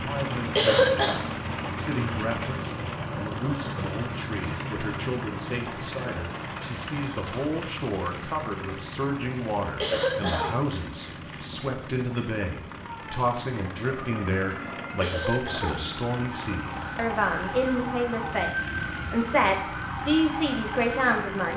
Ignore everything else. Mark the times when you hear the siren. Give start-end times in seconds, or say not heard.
12.8-21.5.